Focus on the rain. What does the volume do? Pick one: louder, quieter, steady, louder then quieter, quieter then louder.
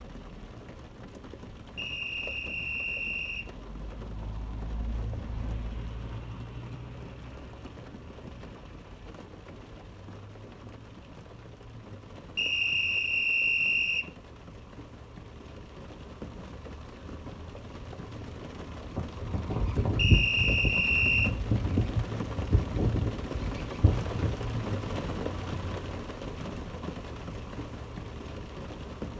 louder.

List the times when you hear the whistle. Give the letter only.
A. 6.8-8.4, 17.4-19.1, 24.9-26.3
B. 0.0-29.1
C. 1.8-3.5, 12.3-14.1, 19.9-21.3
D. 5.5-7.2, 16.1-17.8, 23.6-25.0
C.